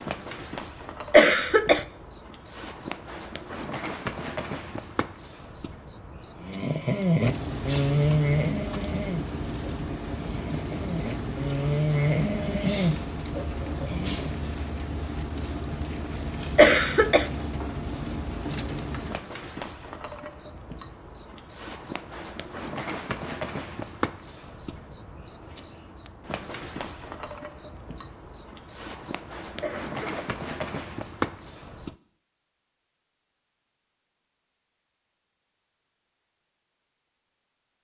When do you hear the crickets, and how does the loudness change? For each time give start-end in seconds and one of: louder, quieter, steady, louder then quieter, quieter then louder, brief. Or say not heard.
0.0-31.9 steady.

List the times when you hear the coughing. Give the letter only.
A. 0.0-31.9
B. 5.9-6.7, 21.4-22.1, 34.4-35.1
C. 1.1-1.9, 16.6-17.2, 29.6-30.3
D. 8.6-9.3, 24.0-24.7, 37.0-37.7
C.